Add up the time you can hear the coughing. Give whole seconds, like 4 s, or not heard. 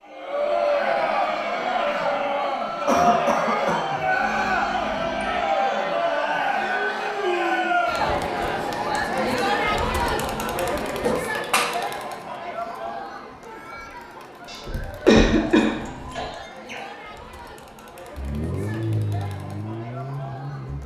4 s.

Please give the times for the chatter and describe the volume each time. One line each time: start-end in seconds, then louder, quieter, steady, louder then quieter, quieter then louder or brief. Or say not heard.
0.1-20.8 quieter.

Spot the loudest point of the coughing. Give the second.
15 s.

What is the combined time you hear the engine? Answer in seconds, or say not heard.
3 s.